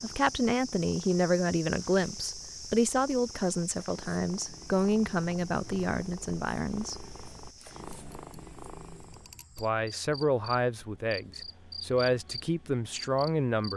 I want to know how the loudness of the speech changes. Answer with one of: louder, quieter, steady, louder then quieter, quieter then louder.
steady.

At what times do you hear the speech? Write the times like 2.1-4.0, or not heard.
0.0-7.0, 9.6-13.7.